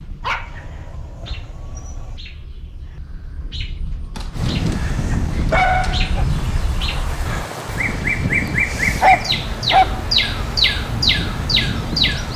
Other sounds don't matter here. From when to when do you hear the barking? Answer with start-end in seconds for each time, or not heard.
0.2-2.2, 4.2-6.2, 9.0-10.0.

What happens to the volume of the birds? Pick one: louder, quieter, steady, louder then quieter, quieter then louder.
louder.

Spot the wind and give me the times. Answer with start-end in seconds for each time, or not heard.
4.3-12.3.